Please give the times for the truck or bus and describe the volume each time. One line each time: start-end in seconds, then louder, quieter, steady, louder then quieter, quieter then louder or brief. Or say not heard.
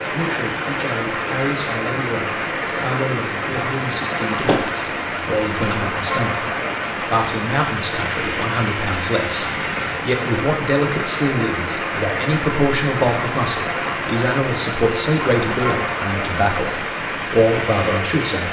not heard.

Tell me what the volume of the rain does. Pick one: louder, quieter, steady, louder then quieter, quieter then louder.
steady.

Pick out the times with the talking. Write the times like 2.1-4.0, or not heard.
0.1-18.4.